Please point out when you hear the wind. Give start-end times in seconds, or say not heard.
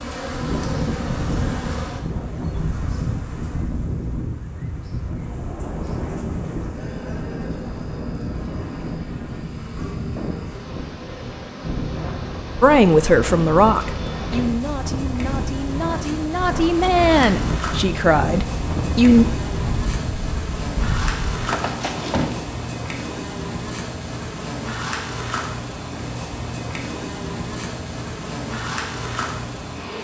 0.0-22.6.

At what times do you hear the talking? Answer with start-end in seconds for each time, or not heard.
12.6-19.2.